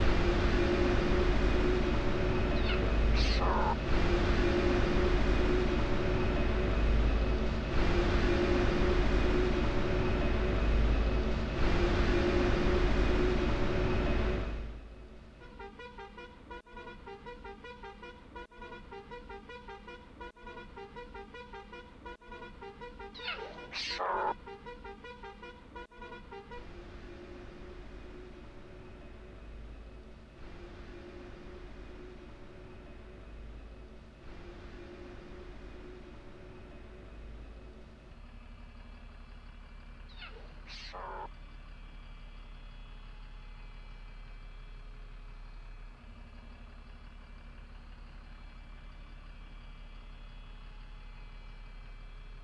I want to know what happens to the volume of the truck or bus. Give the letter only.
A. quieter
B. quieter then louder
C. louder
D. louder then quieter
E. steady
A.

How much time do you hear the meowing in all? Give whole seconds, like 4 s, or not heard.
4 s.